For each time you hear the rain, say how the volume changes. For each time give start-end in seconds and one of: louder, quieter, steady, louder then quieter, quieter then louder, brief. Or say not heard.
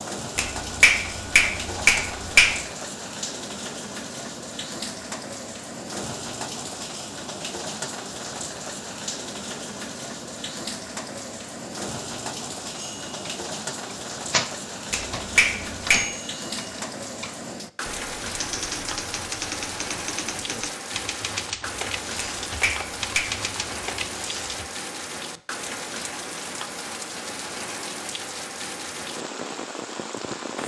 0.0-30.6 steady.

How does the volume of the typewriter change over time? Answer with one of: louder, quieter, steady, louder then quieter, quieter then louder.
quieter then louder.